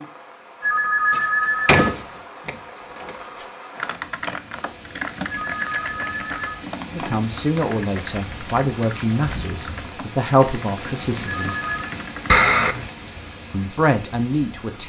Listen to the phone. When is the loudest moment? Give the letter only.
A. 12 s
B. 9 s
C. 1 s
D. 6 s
C.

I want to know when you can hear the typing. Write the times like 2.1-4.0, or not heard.
3.8-12.4.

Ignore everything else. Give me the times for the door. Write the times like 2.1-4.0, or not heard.
1.1-3.5, 12.2-12.9.